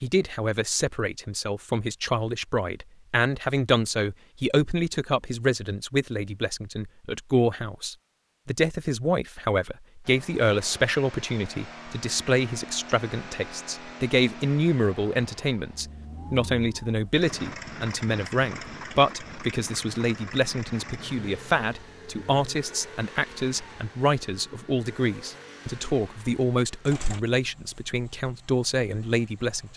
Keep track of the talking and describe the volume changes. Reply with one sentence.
The volume of the talking stays about the same.